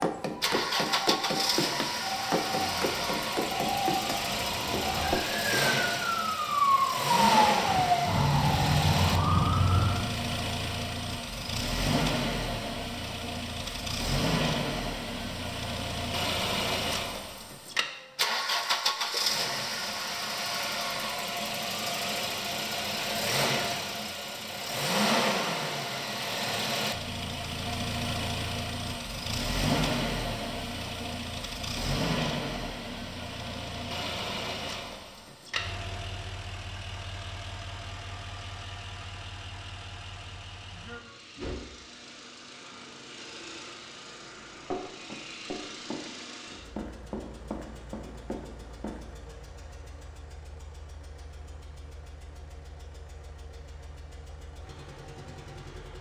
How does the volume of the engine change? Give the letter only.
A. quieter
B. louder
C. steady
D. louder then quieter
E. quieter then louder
A.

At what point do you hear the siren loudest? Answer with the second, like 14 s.
7 s.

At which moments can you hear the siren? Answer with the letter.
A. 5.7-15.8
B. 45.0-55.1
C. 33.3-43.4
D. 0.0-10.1
D.